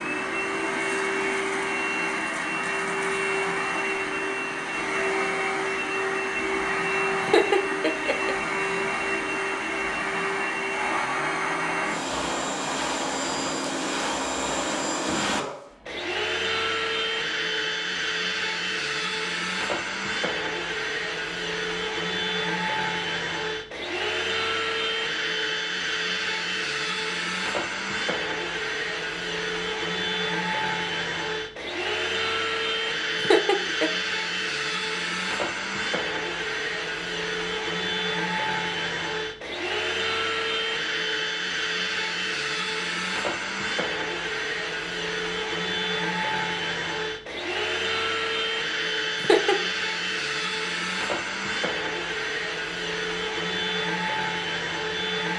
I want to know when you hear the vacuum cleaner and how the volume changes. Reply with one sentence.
The vacuum cleaner can be heard from 0.0 to 55.3 s, at a steady volume.